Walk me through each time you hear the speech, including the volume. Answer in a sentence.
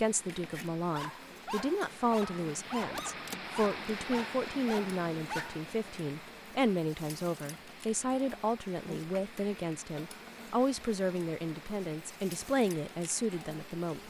The speech can be heard from 0.0 to 14.0 s, at a steady volume.